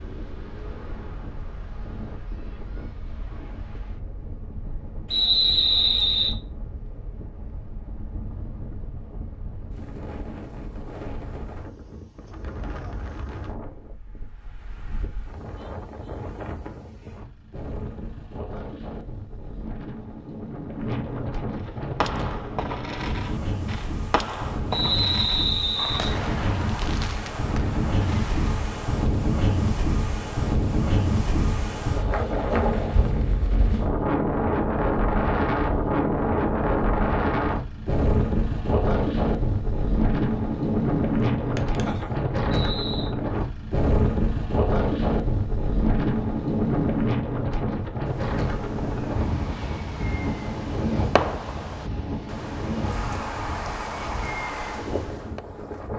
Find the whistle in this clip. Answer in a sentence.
The whistle can be heard from 5.1 to 6.3 s, from 24.7 to 26.1 s and from 42.5 to 43.1 s.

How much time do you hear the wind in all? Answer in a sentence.
The wind can be heard for 56 seconds in total.